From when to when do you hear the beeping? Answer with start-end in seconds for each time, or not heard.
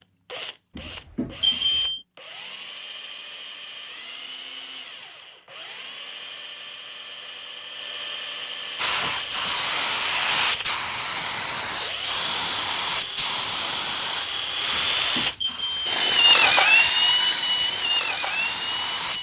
1.1-2.0, 15.2-16.0.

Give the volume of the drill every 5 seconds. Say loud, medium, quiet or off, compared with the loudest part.
quiet, quiet, medium, loud.